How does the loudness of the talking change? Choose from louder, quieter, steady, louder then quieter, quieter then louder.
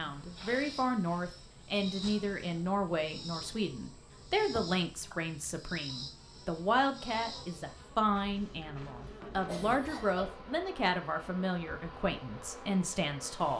steady.